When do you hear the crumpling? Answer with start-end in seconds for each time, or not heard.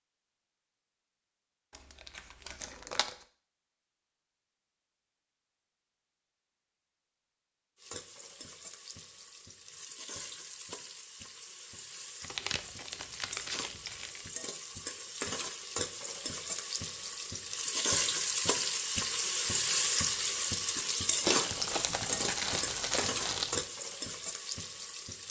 1.8-3.1, 12.2-14.2, 21.2-23.7.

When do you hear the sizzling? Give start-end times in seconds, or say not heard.
7.8-25.2.